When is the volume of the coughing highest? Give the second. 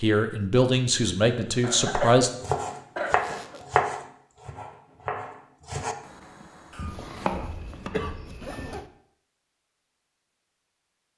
2 s.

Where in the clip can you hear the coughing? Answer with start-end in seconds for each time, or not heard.
1.6-3.6, 6.7-8.8.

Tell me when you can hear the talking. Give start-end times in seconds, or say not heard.
0.0-2.3.